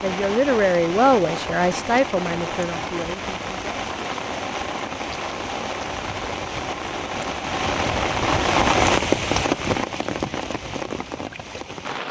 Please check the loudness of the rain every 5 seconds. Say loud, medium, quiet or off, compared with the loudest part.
medium, loud, medium.